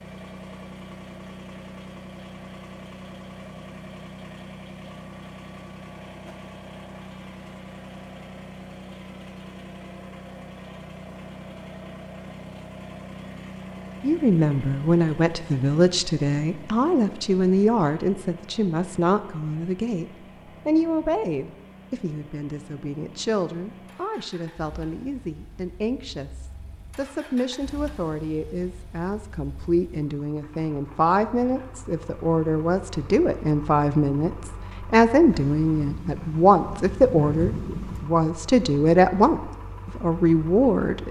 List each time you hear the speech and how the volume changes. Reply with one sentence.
The speech can be heard from 14.0 to 20.1 s, at a steady volume; and from 20.6 to 41.0 s, getting louder.